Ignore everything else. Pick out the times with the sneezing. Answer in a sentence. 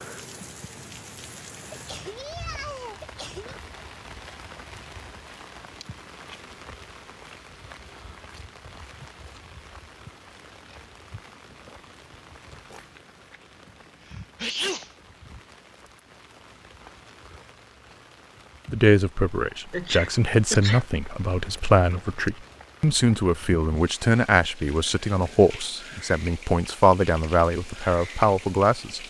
The sneezing can be heard from 1.7 to 3.5 s, from 13.7 to 14.9 s and from 19.7 to 20.9 s.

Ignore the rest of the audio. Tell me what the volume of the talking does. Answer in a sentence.
The volume of the talking stays about the same.